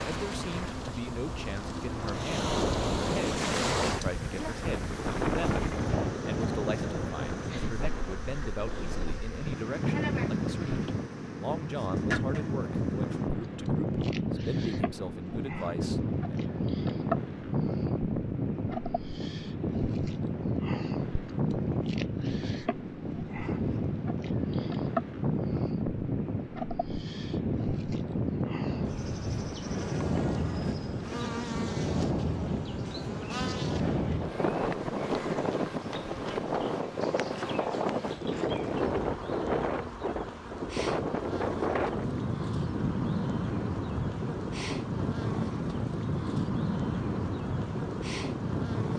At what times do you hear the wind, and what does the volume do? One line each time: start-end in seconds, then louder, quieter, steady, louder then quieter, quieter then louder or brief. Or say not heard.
0.0-48.9 steady.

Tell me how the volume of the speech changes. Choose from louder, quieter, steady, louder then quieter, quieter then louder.
steady.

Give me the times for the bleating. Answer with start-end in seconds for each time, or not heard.
not heard.